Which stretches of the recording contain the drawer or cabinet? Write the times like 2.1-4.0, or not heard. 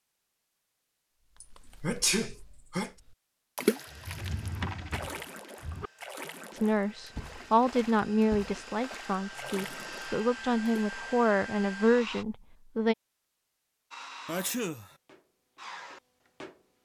3.9-5.9.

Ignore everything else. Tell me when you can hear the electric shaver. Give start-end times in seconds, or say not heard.
not heard.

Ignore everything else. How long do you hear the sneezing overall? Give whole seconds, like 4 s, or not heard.
2 s.